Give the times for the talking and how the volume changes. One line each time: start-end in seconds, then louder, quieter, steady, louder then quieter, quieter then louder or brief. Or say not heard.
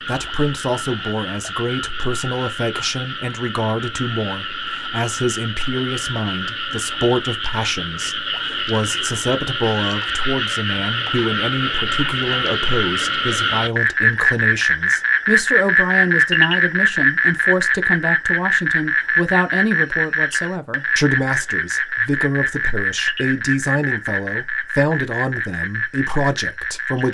0.1-27.1 steady.